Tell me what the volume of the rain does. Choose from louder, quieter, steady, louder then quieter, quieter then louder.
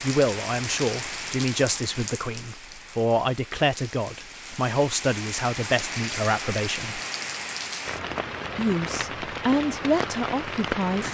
quieter then louder.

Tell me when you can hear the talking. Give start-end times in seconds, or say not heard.
0.0-7.0, 8.6-11.0.